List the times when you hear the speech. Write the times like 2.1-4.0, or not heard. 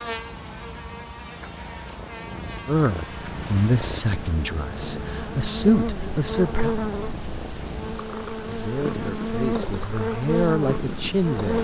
2.6-6.8, 8.4-11.5.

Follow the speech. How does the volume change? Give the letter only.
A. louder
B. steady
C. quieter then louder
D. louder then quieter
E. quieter
C.